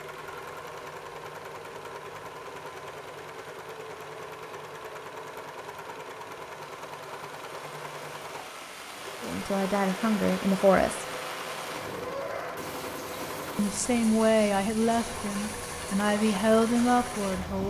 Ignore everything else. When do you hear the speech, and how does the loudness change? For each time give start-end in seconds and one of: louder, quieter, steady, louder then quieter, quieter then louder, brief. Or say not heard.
9.2-11.1 brief
13.6-17.6 quieter then louder.